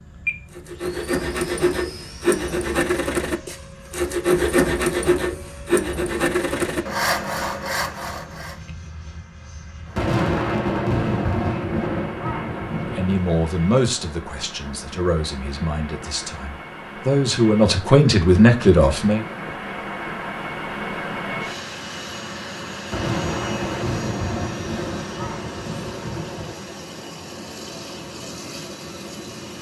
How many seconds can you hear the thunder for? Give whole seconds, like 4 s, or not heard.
7 s.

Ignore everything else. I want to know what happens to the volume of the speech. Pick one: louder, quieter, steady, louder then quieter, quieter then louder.
quieter then louder.